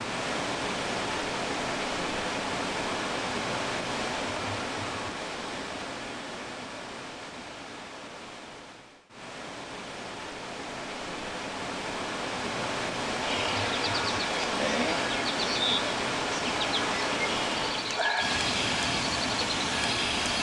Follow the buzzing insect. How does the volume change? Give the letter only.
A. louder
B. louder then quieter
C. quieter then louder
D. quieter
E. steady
E.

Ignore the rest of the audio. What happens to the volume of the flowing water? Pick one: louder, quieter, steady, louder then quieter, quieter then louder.
quieter then louder.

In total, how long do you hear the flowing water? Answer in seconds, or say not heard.
20 s.